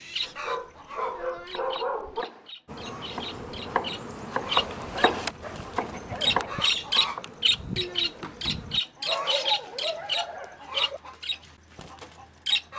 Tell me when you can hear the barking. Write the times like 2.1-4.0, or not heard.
0.2-2.2, 4.8-6.8, 9.1-11.0.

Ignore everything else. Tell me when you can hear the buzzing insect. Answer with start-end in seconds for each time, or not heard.
2.6-8.8.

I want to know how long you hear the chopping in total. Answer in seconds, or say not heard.
6 s.